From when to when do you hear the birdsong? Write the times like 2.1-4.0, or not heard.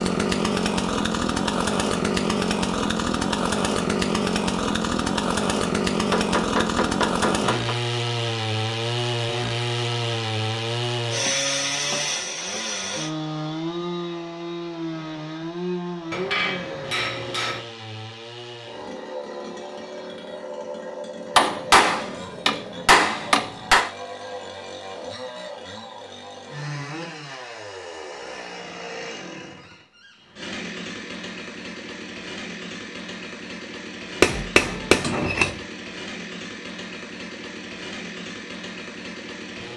not heard.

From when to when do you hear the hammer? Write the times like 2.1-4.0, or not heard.
6.1-7.8, 16.1-17.6, 21.4-23.9, 34.2-35.5.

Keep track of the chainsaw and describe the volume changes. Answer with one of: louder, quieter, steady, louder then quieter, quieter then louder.
quieter.